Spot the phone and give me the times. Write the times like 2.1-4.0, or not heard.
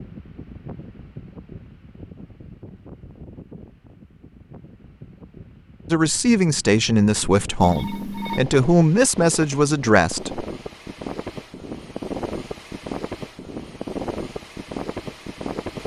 7.6-8.4.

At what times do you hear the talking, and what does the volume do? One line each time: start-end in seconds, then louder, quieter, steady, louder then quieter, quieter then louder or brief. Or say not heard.
5.9-10.4 quieter then louder.